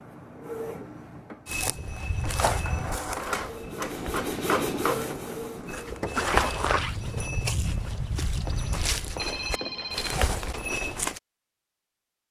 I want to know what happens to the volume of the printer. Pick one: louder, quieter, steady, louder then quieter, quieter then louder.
louder then quieter.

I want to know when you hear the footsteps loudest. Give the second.
6 s.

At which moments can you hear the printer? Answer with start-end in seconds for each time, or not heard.
0.0-6.6.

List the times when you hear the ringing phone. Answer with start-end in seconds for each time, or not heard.
8.4-10.2.